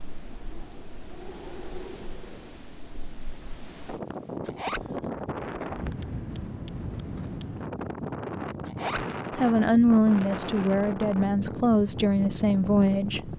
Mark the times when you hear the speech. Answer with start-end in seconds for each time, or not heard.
9.3-13.3.